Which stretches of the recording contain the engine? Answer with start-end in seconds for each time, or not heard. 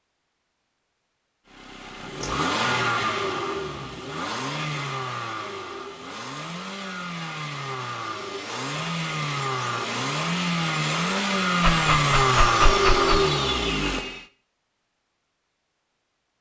1.6-14.2.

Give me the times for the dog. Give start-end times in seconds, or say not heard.
11.6-13.2.